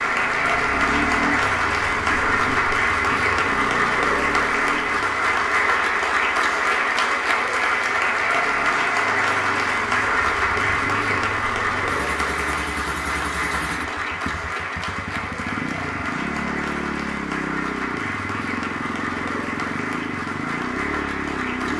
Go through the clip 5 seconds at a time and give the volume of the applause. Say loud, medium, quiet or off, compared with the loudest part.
loud, loud, loud, medium, medium.